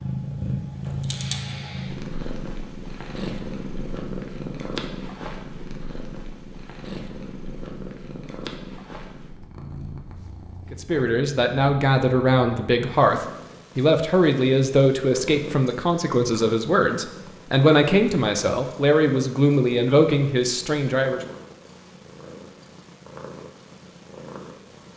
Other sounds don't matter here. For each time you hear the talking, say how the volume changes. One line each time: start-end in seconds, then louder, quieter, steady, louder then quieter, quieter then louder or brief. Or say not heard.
10.7-21.2 steady.